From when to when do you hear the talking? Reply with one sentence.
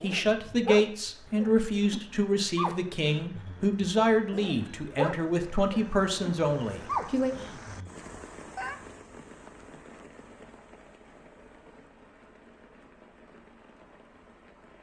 You can hear the talking from 0.0 to 7.3 s.